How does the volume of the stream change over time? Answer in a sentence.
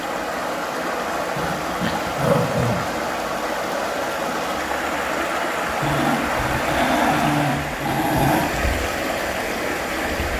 The volume of the stream stays about the same.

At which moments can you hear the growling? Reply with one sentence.
The growling can be heard from 1.4 to 2.9 s and from 5.8 to 8.5 s.